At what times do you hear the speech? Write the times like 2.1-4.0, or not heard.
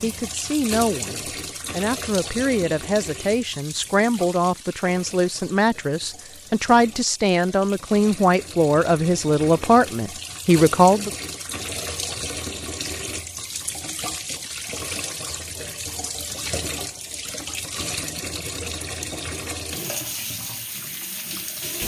0.0-11.1.